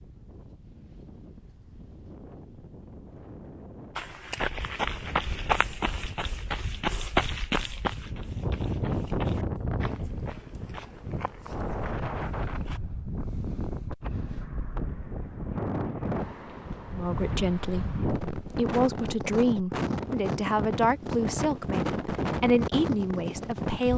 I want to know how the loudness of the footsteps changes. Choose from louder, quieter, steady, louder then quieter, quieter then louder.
quieter.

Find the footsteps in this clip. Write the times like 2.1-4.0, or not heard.
4.0-12.8.